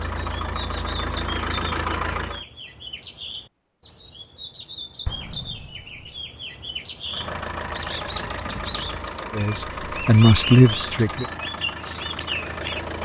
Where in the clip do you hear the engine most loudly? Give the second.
2 s.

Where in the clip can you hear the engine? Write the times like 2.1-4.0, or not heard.
0.0-2.5, 7.0-13.0.